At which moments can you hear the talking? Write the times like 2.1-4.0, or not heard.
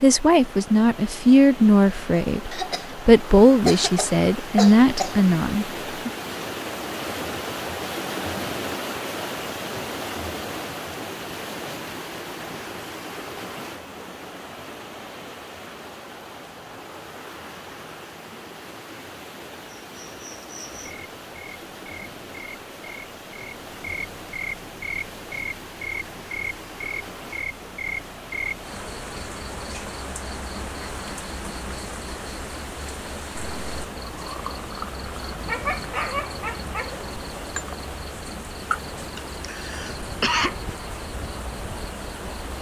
0.0-6.1.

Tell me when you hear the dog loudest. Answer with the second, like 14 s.
36 s.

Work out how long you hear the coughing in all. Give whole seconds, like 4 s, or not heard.
4 s.